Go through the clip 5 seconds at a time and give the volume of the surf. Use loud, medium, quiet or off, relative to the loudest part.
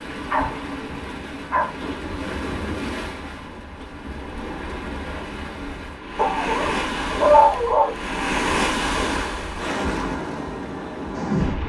medium, loud, loud.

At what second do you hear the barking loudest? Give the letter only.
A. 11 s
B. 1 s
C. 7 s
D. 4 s
C.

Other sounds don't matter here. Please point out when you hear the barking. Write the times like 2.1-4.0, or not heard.
0.3-1.7, 6.2-8.0.